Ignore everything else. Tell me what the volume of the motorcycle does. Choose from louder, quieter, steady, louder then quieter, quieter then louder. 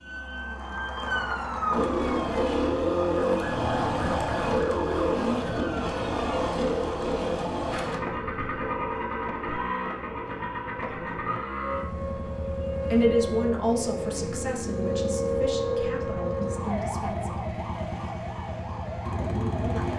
quieter.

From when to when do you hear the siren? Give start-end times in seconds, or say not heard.
0.0-6.5, 11.6-19.9.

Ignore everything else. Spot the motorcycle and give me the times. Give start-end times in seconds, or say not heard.
1.7-19.9.